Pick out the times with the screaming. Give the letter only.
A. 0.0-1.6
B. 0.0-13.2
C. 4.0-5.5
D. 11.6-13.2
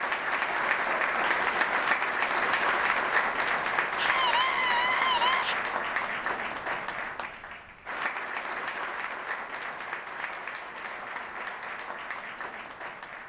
C.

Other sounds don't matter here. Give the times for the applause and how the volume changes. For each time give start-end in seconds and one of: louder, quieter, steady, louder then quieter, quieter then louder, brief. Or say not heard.
0.0-13.2 quieter.